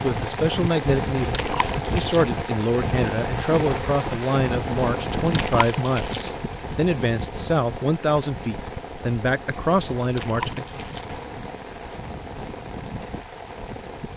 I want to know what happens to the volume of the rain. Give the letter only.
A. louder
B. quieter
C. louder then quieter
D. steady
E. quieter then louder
B.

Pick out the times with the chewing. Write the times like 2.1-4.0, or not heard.
1.3-2.4, 5.3-6.3, 10.2-11.2.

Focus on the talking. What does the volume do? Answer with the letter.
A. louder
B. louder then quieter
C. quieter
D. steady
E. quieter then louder
D.